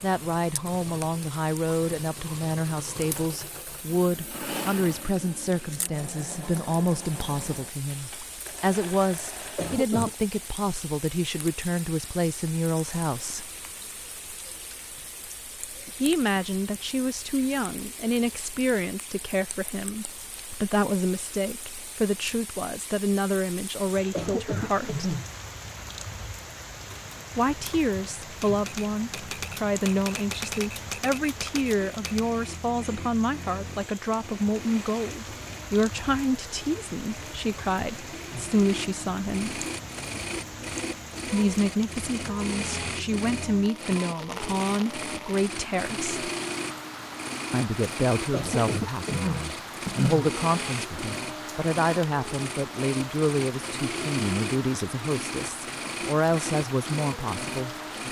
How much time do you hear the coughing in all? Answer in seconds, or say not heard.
4 s.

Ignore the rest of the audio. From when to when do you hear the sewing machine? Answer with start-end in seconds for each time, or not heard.
0.0-9.8, 31.8-58.0.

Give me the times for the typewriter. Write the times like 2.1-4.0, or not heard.
26.8-32.2.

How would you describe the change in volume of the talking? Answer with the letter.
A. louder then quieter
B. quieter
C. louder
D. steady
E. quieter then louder
D.